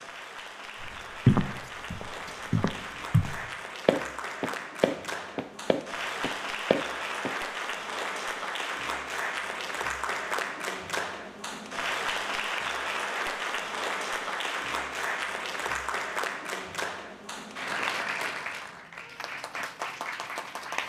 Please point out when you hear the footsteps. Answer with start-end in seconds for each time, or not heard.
0.8-7.3.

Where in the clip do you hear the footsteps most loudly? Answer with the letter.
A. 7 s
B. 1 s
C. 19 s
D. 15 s
B.